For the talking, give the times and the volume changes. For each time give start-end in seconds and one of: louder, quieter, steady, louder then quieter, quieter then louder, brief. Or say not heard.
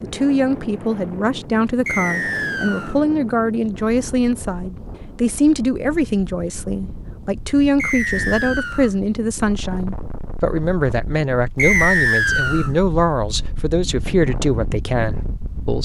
0.0-15.8 steady.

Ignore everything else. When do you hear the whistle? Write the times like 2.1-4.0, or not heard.
1.9-3.0, 7.8-8.9, 11.6-12.7.